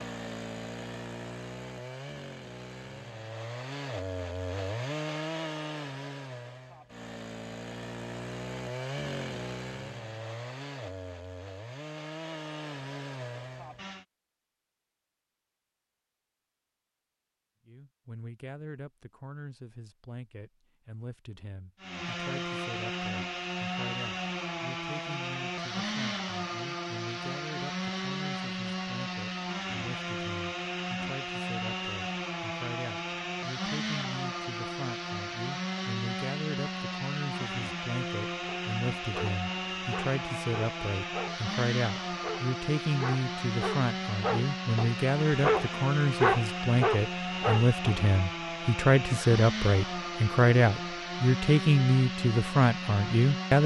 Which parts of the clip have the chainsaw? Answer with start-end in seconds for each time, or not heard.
0.0-14.1, 21.8-53.6.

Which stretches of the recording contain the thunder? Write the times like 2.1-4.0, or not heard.
not heard.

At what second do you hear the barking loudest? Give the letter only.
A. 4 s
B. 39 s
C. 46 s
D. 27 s
C.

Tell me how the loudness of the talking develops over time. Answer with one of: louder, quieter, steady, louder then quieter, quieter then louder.
louder.